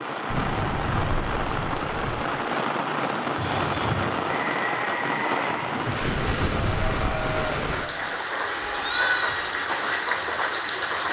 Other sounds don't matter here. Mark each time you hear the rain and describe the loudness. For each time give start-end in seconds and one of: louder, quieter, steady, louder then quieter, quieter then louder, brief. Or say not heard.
0.0-11.0 steady.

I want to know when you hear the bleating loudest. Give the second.
9 s.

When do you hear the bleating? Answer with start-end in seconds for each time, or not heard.
3.4-9.5.